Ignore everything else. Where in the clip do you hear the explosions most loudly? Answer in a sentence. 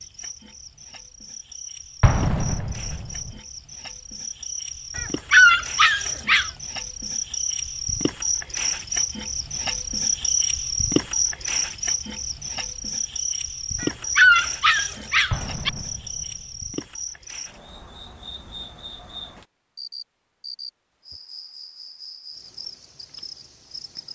The volume of the explosions peaks at 2 seconds.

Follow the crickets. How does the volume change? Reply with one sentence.
The loudness of the crickets goes up, then down.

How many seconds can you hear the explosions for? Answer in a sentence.
The explosions can be heard for 3 seconds in total.